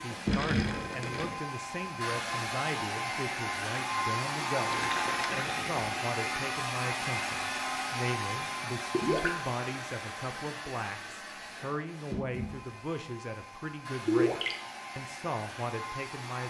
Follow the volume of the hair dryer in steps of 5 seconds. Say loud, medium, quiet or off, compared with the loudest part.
loud, loud, medium, medium.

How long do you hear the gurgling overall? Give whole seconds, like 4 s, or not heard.
4 s.